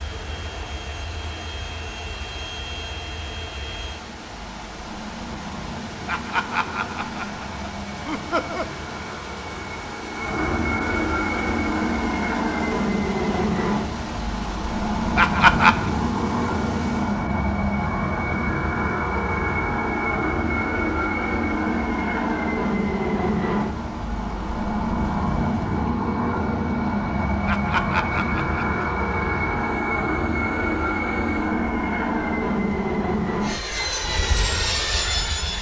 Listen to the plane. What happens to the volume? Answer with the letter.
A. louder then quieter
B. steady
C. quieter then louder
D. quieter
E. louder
E.